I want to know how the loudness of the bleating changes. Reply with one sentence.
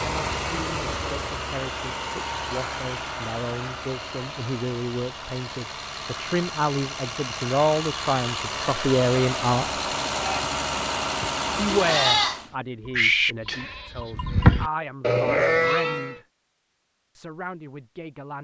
The loudness of the bleating goes up.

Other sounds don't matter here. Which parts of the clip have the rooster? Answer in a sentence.
The rooster can't be heard in this clip.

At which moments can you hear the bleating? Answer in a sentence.
You can hear the bleating from 10.2 to 16.2 s.